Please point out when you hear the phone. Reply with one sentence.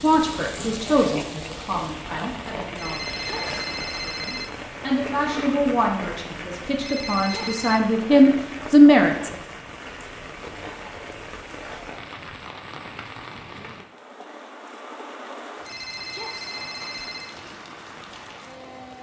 You can hear the phone from 2.8 to 4.5 s, from 6.8 to 7.8 s and from 15.7 to 17.4 s.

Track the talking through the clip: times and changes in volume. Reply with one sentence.
You can hear the talking from 0.0 to 9.3 s, getting quieter then louder.